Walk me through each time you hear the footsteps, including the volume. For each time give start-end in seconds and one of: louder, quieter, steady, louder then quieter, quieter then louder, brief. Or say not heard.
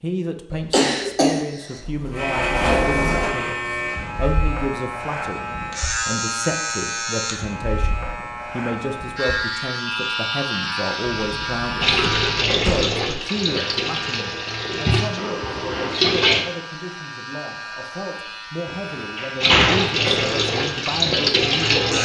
not heard.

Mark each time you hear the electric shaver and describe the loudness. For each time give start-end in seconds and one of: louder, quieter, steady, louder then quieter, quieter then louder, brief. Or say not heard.
2.1-21.9 quieter.